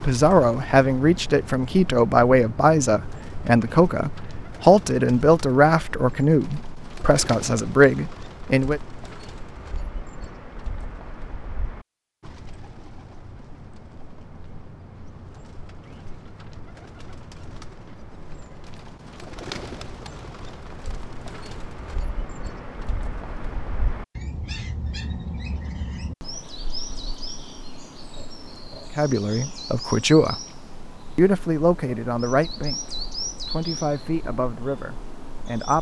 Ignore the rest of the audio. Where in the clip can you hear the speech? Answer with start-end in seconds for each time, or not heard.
0.0-8.8, 28.9-30.4, 31.1-35.7.